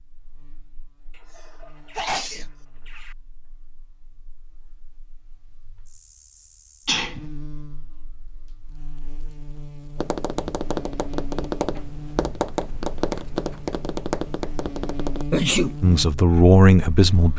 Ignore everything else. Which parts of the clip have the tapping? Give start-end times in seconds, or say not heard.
9.9-15.2.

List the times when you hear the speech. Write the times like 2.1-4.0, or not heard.
15.8-17.3.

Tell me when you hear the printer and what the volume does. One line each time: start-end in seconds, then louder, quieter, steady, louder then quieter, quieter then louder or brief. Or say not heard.
not heard.